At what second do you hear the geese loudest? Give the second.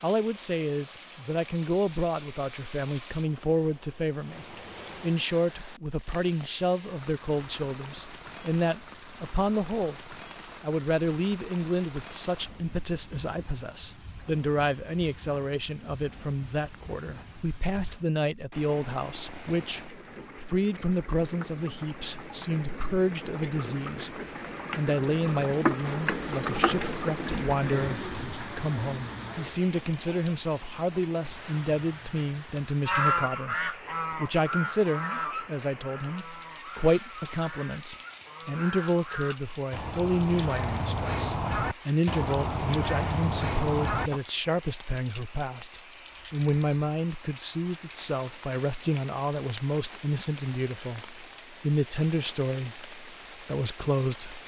33 s.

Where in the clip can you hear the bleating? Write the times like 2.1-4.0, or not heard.
not heard.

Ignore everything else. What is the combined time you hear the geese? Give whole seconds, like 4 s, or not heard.
11 s.